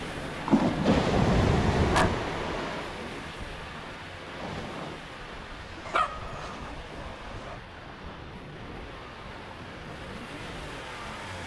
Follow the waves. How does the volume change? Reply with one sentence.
The volume of the waves goes down.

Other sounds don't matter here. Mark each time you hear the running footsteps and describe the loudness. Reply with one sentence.
The running footsteps can't be heard in this clip.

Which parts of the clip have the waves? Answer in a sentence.
You can hear the waves from 0.0 to 11.4 s.